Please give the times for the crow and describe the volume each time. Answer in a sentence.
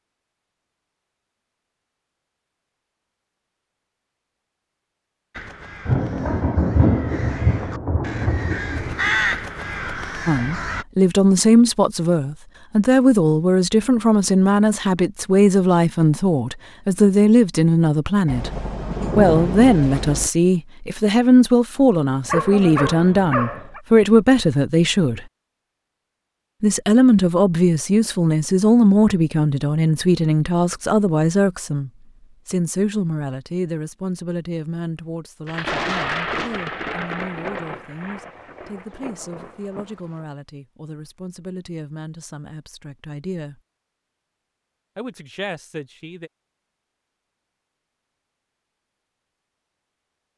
You can hear the crow from 5.3 to 10.8 s, getting louder then quieter.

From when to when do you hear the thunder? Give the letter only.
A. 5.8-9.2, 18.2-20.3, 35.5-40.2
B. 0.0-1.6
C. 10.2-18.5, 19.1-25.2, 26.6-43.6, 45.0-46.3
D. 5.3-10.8
A.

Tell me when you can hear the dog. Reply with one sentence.
The dog can be heard from 22.2 to 23.8 s.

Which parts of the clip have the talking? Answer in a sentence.
You can hear the talking from 10.2 to 18.5 s, from 19.1 to 25.2 s, from 26.6 to 43.6 s and from 45.0 to 46.3 s.